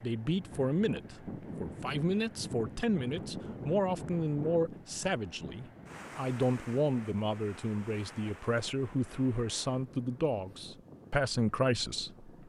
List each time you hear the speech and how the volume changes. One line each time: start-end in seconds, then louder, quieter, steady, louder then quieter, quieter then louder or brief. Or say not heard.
0.0-12.3 steady.